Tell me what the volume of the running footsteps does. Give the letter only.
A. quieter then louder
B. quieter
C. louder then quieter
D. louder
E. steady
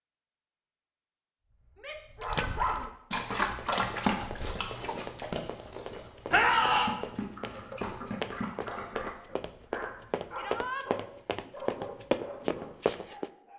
D.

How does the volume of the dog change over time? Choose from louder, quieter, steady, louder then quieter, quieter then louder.
quieter.